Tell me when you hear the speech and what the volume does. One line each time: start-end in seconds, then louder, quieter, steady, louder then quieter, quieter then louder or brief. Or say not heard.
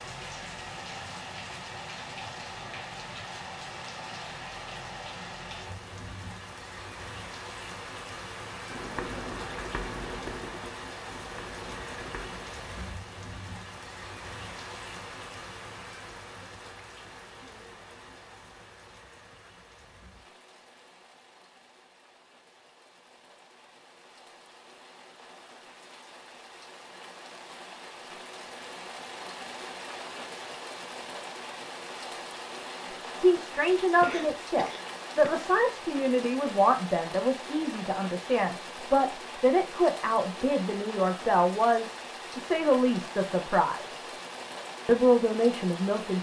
33.1-44.0 steady
44.9-46.1 brief.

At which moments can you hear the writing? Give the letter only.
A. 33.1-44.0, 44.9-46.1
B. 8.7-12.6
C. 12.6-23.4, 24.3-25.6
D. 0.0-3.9
B.